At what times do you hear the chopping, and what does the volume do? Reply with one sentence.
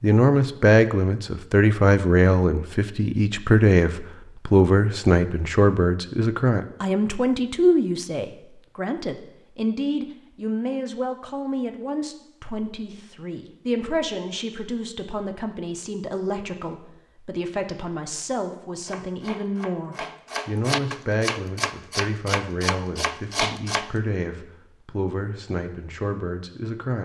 You can hear the chopping from 18.8 to 23.9 s, getting louder.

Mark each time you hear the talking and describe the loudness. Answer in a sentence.
You can hear the talking from 0.0 to 27.0 s, getting quieter.